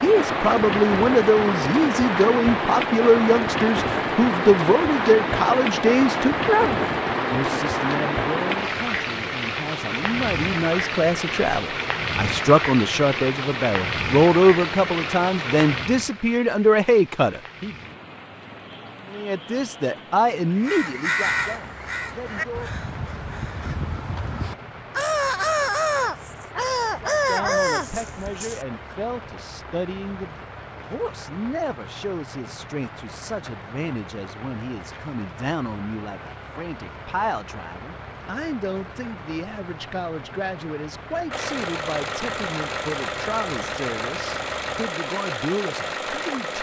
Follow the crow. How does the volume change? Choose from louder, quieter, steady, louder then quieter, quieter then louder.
quieter then louder.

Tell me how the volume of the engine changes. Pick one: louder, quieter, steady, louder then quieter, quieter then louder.
steady.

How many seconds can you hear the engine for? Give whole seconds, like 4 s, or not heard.
5 s.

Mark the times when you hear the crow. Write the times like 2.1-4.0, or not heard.
20.6-28.9.